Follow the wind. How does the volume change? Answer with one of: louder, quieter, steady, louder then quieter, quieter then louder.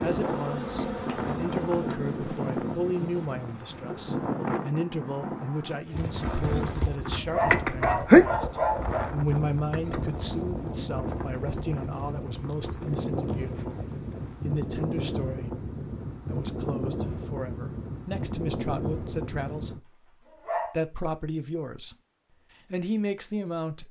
steady.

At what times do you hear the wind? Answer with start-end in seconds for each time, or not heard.
0.0-19.8.